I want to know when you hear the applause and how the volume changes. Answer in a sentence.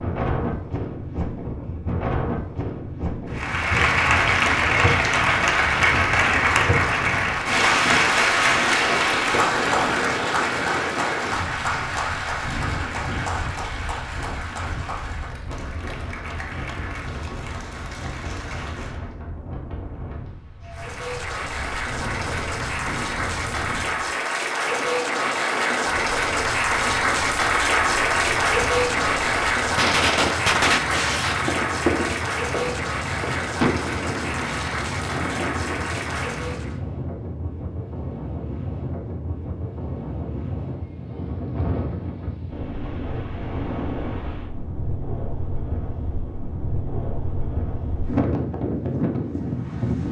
You can hear the applause from 3.3 to 19.1 s, getting quieter; and from 20.6 to 36.8 s, getting louder then quieter.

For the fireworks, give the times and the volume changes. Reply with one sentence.
You can hear the fireworks from 28.4 to 36.1 s, getting quieter.